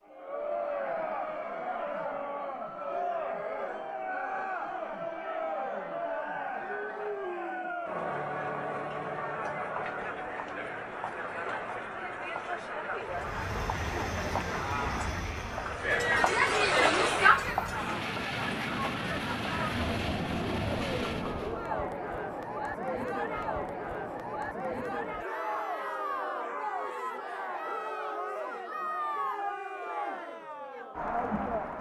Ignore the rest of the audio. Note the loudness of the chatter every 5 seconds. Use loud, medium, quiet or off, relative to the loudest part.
medium, medium, medium, loud, medium, medium, medium.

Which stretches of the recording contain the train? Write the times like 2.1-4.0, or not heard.
13.0-21.6.